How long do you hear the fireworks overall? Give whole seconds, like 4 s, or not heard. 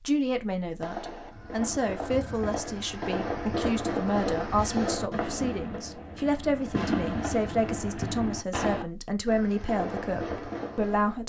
10 s.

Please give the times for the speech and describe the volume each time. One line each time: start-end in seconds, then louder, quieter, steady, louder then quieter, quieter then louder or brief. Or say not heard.
0.1-11.2 steady.